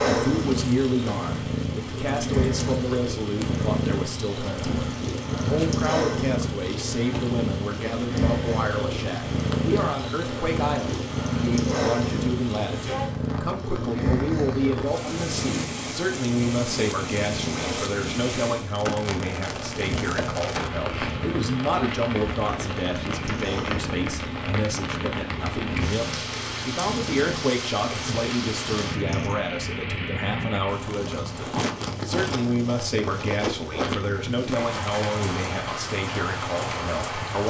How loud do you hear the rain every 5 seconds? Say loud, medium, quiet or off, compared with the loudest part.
medium, medium, medium, loud, loud, loud, loud, loud.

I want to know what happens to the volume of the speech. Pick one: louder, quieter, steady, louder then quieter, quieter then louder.
steady.